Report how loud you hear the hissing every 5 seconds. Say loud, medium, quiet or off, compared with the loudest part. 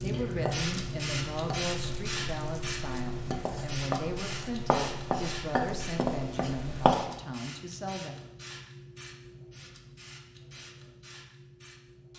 loud, medium, quiet.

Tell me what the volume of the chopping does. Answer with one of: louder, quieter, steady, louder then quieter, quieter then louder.
quieter then louder.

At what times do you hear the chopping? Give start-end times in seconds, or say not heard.
0.0-7.0.